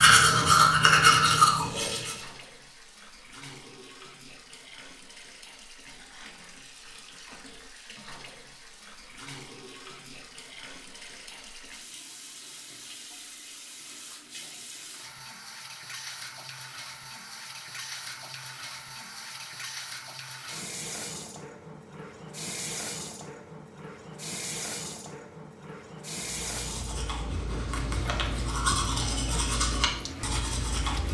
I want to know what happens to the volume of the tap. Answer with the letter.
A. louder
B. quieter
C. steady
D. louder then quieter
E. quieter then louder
A.